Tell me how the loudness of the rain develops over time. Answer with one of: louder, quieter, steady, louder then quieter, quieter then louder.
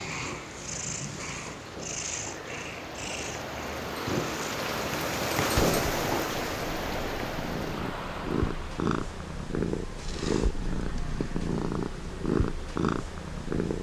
louder then quieter.